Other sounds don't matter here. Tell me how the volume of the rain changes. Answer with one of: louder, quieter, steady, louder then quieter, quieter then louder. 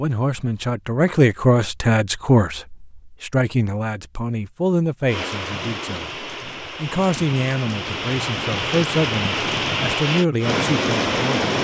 louder.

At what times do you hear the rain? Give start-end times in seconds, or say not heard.
5.0-11.5.